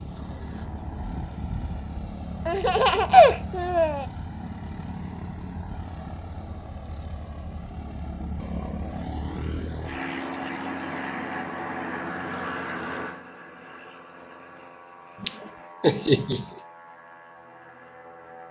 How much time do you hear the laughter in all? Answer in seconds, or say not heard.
3 s.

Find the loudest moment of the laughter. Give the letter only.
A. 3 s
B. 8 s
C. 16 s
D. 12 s
A.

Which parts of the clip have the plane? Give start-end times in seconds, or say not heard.
0.0-18.4.